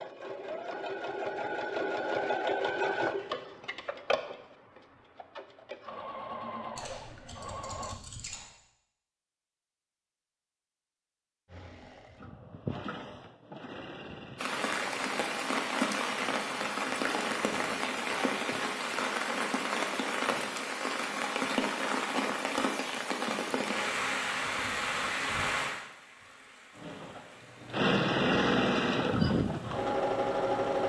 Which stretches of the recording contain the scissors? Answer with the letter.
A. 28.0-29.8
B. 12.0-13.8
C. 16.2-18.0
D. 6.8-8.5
D.